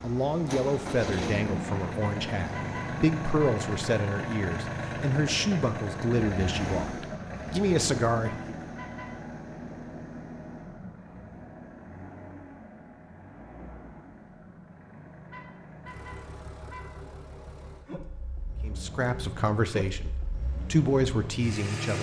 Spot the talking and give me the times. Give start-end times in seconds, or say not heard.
0.0-8.5, 18.6-21.9.